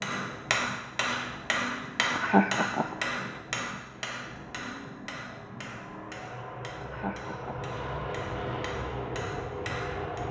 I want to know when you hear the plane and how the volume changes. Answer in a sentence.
The plane can be heard from 0.0 to 10.2 s, getting louder.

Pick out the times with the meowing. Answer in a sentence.
You can't hear the meowing here.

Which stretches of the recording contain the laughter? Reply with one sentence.
The laughter can be heard from 2.1 to 3.0 s and from 6.8 to 7.7 s.